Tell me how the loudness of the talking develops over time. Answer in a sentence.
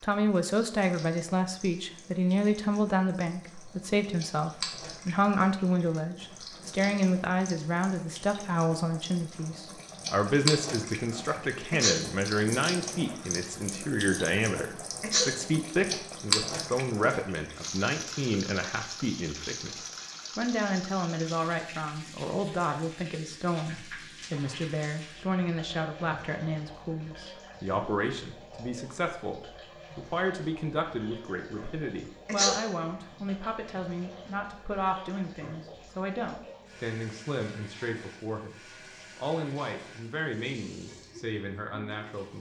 The volume of the talking goes down.